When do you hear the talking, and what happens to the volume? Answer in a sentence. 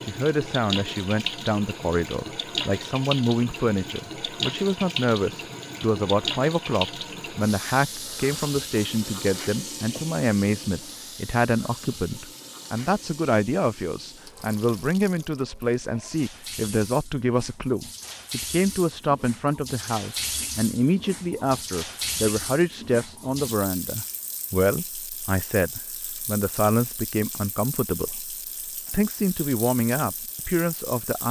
You can hear the talking from 0.1 to 31.2 s, at a steady volume.